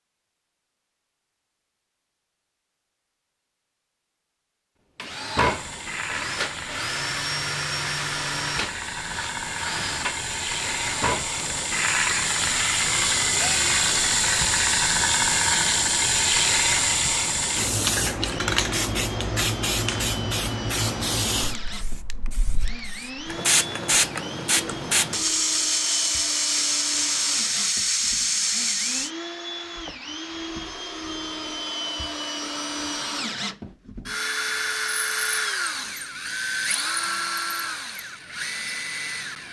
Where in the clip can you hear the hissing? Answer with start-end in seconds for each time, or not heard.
5.4-29.1.